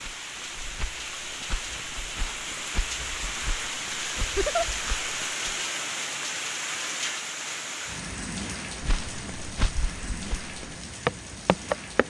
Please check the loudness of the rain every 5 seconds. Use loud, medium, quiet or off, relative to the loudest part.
loud, loud, medium.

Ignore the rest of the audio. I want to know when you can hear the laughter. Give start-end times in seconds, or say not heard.
4.2-4.7.